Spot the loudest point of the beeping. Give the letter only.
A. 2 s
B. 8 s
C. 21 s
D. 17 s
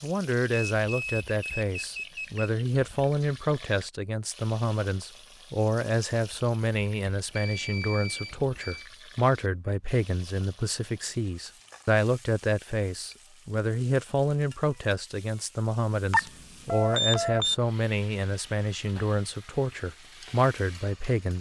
D.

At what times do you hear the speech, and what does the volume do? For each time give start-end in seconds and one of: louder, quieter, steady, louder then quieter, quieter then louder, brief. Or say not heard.
0.0-21.3 steady.